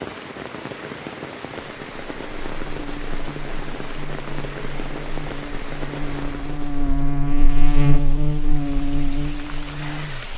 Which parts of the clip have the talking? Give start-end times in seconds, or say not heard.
not heard.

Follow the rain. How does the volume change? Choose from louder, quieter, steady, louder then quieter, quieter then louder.
quieter.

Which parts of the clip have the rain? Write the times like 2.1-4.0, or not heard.
0.0-10.3.